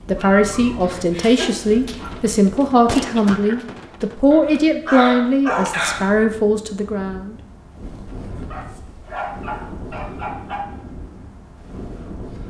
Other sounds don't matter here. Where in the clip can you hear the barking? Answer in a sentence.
The barking can be heard from 0.1 to 2.1 s, from 4.3 to 6.1 s and from 8.5 to 10.7 s.